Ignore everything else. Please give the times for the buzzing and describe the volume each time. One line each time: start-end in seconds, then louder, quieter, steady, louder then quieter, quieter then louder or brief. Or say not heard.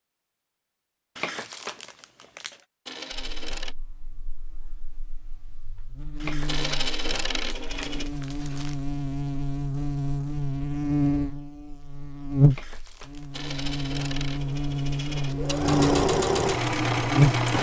3.1-17.4 louder.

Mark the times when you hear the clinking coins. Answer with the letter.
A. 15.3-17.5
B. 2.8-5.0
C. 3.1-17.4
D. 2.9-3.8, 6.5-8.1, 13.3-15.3
D.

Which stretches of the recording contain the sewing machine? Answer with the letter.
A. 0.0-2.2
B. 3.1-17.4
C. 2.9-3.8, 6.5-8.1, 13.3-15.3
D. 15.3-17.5
D.